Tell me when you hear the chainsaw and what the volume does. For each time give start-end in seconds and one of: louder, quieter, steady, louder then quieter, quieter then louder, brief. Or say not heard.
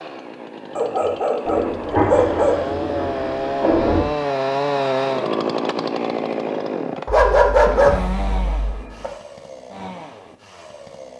0.0-11.1 louder then quieter.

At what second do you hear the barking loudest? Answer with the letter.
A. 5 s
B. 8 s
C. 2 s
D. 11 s
B.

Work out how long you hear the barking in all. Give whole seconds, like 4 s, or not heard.
4 s.